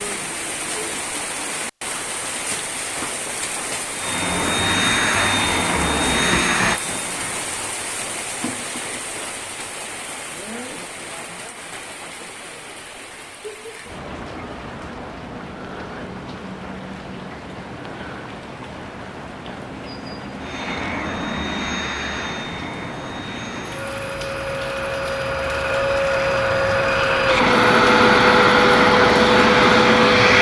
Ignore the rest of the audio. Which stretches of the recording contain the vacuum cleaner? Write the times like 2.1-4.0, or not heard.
3.9-7.7, 20.4-30.3.